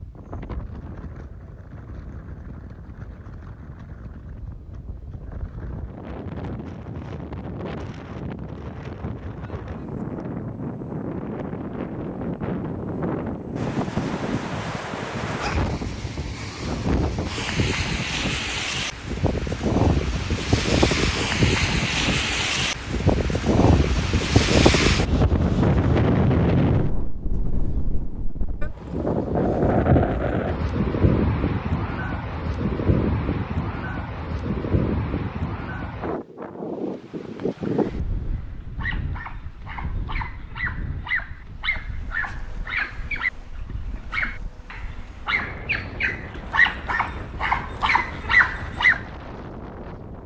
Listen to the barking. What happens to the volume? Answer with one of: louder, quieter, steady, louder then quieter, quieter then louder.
louder.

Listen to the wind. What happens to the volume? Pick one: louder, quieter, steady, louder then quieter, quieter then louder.
louder then quieter.